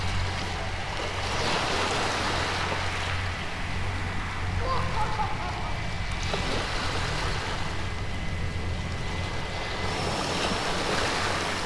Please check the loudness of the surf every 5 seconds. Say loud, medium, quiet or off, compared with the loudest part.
loud, medium, loud.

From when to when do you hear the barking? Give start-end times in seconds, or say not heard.
not heard.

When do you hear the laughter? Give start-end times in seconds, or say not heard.
4.6-5.8.